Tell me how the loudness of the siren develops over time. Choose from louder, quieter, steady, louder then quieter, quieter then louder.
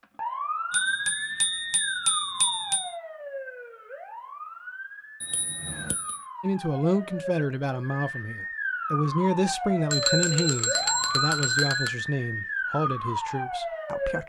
quieter then louder.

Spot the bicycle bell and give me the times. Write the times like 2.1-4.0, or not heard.
0.7-3.0, 5.2-6.2, 9.9-11.9.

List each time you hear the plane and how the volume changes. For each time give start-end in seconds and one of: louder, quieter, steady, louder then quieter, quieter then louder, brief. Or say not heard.
not heard.